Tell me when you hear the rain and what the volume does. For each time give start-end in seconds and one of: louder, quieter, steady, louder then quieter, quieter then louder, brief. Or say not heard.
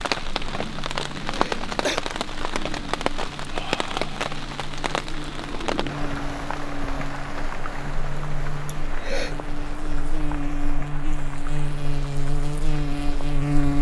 0.0-13.7 quieter.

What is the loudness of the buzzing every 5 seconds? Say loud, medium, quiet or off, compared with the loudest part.
quiet, medium, loud.